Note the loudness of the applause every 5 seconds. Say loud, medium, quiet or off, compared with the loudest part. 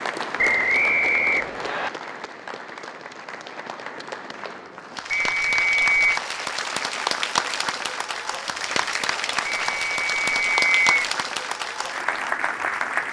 medium, loud, loud.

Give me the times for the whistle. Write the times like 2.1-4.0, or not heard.
0.3-1.9, 5.1-6.2, 9.4-10.9.